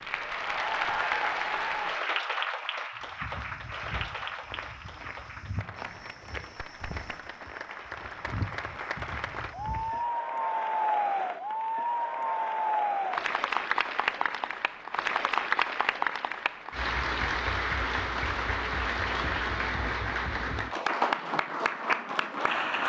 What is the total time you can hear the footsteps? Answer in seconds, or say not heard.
7 s.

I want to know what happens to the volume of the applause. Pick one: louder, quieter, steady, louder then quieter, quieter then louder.
quieter then louder.